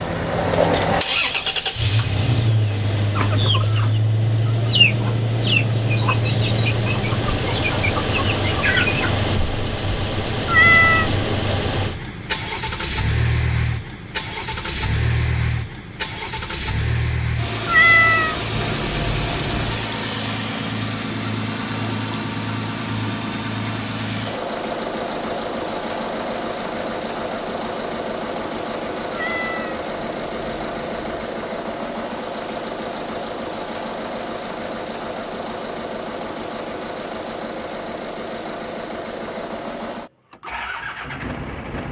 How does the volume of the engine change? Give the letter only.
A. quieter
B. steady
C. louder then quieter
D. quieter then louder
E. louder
A.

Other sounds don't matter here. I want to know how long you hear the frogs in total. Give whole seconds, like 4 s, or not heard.
not heard.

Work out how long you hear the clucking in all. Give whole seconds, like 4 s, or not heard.
6 s.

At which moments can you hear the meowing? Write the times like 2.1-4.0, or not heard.
10.4-11.1, 17.6-19.9, 29.1-31.3.